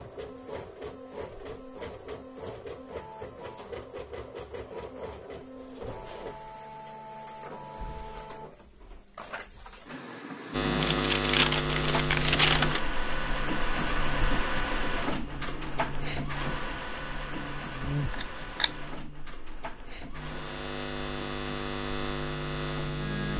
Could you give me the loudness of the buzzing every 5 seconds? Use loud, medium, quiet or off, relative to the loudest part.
off, off, loud, medium, loud.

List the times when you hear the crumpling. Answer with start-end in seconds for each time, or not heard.
10.8-12.8.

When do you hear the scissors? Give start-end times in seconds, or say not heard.
17.8-18.8.